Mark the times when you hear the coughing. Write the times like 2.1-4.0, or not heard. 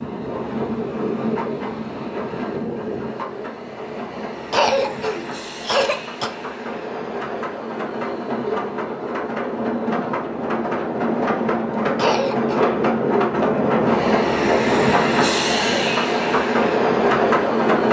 4.5-6.3, 11.9-12.7.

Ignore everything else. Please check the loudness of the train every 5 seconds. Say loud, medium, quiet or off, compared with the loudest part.
medium, medium, loud, loud.